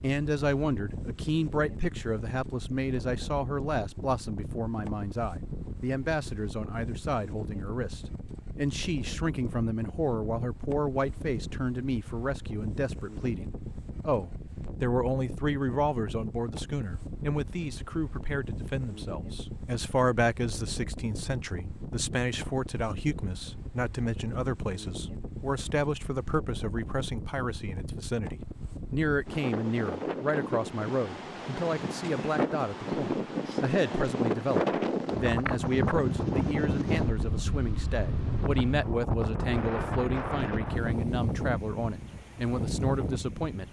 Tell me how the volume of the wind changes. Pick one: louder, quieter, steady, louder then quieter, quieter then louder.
louder.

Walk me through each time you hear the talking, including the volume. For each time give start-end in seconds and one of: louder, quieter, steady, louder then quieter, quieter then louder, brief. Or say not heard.
0.0-43.6 steady.